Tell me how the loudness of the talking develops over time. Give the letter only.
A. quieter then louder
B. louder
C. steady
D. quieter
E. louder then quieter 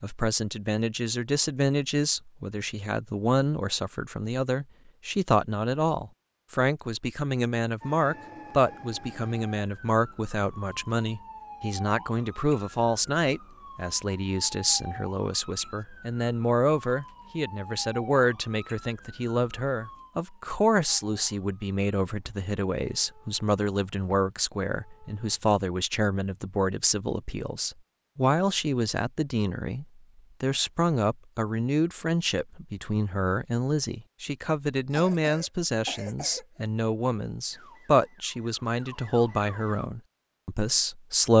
C.